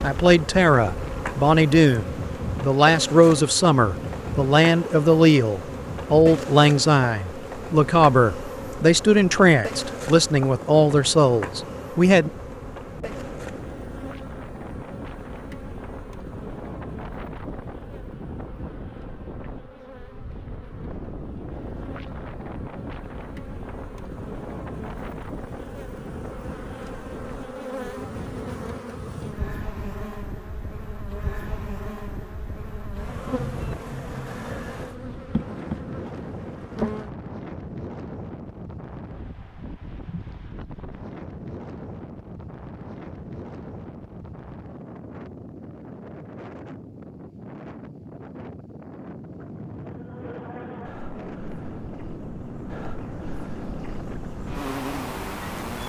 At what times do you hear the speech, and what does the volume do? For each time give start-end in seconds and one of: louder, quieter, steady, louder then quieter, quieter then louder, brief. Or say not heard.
0.0-12.3 steady.